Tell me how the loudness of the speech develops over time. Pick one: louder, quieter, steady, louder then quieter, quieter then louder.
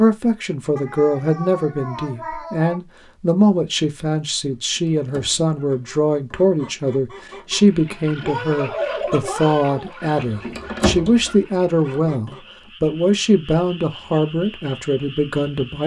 steady.